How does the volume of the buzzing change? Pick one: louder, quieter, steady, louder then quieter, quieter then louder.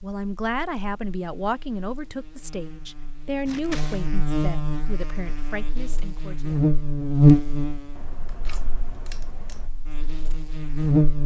louder then quieter.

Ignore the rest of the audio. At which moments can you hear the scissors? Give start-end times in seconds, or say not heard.
3.5-4.1, 8.0-9.7.